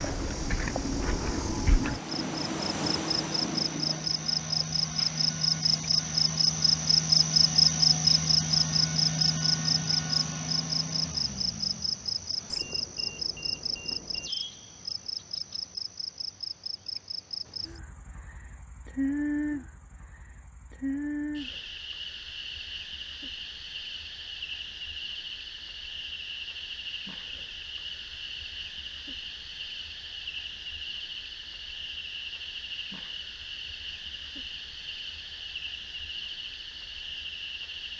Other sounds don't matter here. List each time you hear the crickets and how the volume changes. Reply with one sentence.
The crickets can be heard from 0.0 to 37.9 s, getting quieter.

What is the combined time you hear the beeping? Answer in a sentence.
The beeping can be heard for 2 seconds in total.